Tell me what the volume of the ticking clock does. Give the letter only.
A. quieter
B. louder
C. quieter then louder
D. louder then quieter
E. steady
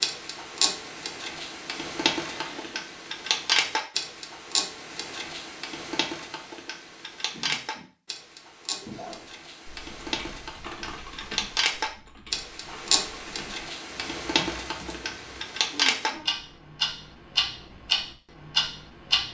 C.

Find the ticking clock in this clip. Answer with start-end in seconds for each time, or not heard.
0.0-19.2.